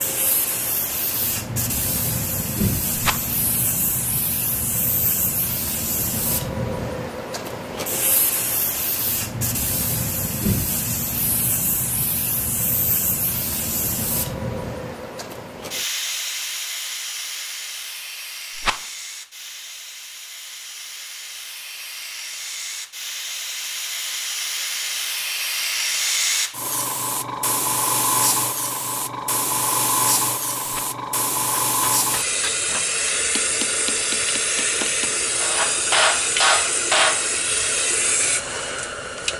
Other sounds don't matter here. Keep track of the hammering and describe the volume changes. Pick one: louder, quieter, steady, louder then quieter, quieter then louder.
louder.